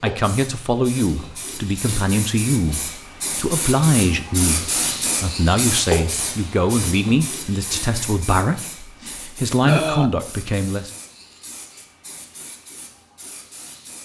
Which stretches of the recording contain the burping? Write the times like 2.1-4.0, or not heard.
9.7-10.1.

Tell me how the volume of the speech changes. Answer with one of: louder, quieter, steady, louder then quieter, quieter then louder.
steady.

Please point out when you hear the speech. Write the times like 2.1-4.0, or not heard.
0.0-10.9.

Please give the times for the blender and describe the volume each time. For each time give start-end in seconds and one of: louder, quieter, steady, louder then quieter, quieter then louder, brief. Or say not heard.
not heard.